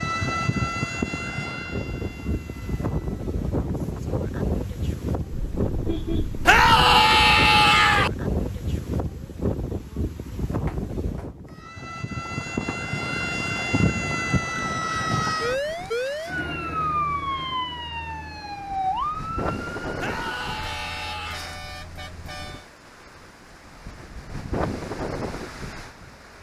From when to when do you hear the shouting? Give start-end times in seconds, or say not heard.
6.5-8.1, 19.9-21.4.